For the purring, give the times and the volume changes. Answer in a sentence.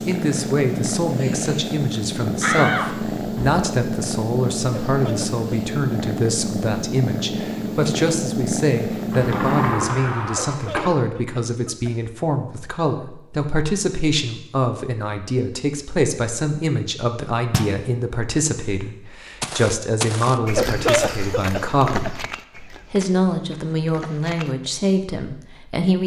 You can hear the purring from 0.0 to 9.9 s, at a steady volume.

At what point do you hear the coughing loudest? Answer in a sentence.
The loudest moment of the coughing is at 21 seconds.